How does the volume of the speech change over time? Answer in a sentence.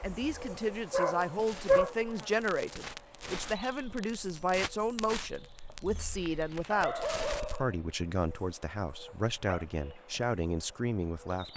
The loudness of the speech stays about the same.